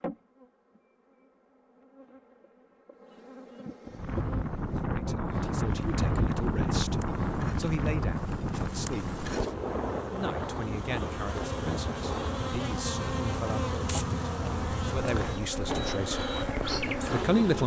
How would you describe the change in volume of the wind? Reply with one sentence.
The volume of the wind goes down.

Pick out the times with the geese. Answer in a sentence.
You can't hear the geese here.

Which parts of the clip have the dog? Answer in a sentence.
The dog can't be heard in this clip.